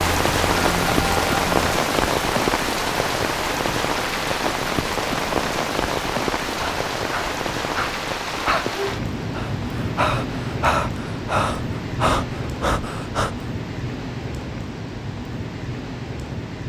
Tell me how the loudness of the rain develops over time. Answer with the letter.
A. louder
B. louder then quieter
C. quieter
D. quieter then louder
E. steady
C.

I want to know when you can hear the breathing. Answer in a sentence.
The breathing can be heard from 6.5 to 8.7 s and from 9.3 to 13.3 s.